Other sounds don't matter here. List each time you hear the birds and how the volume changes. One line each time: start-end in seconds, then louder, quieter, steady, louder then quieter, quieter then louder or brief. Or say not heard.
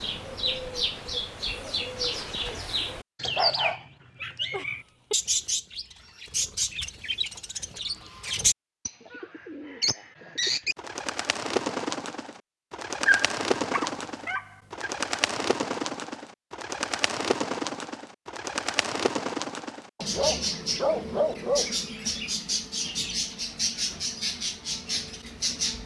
0.0-25.8 steady.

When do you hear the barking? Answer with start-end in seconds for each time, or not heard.
3.2-3.8, 4.5-5.2, 13.1-14.9, 19.9-21.8.